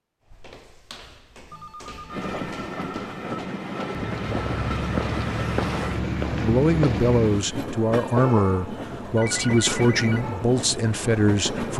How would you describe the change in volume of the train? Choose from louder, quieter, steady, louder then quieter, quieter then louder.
steady.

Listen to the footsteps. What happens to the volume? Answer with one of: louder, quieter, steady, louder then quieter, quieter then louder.
louder.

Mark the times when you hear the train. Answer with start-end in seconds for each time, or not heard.
2.0-11.7.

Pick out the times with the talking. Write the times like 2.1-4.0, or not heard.
6.2-11.7.